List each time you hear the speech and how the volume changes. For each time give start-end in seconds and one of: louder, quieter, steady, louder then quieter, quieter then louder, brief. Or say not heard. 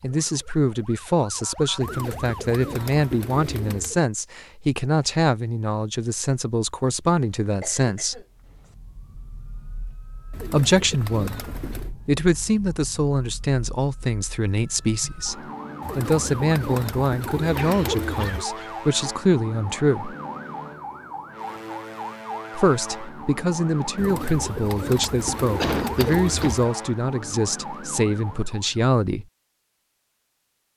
0.0-8.2 steady
10.5-20.1 steady
22.6-29.2 steady.